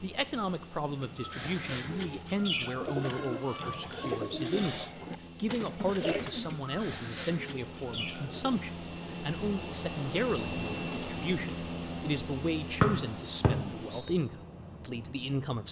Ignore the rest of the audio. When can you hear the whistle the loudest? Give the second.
13 s.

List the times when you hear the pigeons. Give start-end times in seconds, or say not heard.
0.8-8.6.